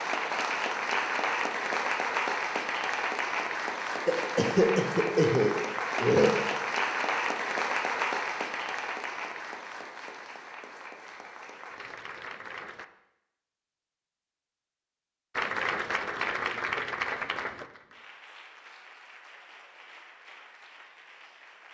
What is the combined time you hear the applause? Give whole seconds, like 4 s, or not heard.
19 s.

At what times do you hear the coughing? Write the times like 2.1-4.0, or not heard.
4.0-6.5.